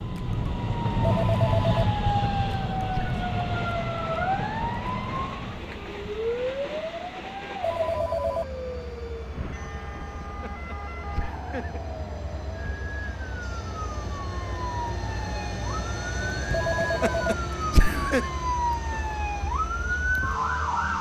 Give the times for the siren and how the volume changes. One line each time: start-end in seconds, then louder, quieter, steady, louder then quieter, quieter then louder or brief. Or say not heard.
0.0-20.9 quieter then louder.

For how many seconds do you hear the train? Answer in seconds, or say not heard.
21 s.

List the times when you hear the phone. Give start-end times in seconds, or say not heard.
1.0-1.9, 7.6-8.4, 16.5-17.4.